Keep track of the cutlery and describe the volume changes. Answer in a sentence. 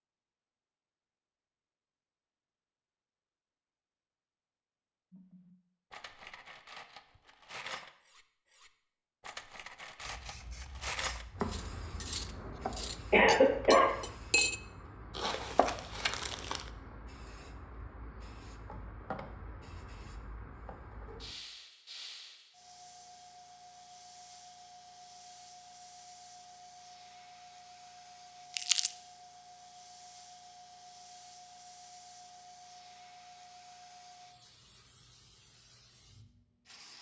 The volume of the cutlery goes up.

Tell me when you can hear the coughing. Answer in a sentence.
The coughing can be heard from 13.1 to 13.9 s.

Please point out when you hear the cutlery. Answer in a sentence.
You can hear the cutlery from 5.1 to 14.6 s.